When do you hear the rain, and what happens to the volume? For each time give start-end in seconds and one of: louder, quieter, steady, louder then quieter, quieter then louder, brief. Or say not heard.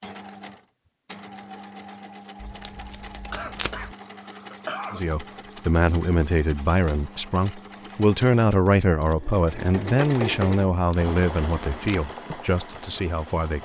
not heard.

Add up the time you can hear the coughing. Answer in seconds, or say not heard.
2 s.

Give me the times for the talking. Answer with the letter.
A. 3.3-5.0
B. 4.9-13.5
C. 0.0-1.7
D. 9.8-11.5
B.